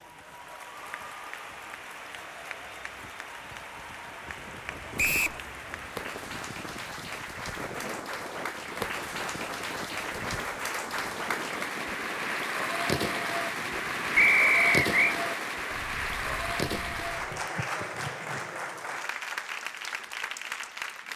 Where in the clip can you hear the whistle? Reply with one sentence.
You can hear the whistle from 5.0 to 5.4 s and from 14.2 to 15.2 s.